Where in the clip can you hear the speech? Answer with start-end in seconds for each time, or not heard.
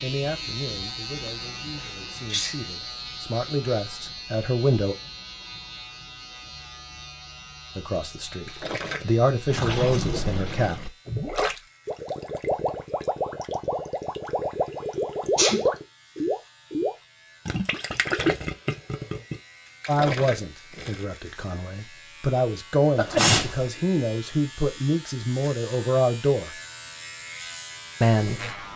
0.0-5.0, 7.8-10.9, 19.9-26.6, 28.0-28.6.